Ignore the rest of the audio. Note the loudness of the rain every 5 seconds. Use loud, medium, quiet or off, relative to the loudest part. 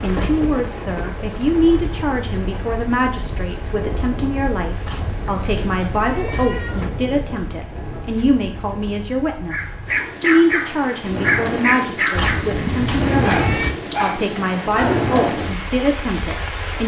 medium, medium, loud, loud.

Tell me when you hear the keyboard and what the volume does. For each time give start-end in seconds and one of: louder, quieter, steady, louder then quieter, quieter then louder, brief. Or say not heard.
not heard.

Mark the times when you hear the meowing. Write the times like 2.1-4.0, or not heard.
4.8-6.8, 12.1-13.8.